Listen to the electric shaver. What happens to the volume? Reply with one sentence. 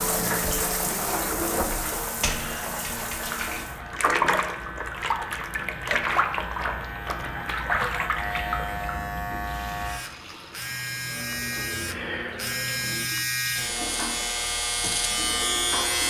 The volume of the electric shaver goes up.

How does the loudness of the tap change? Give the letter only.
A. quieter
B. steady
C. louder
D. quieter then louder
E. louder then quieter
A.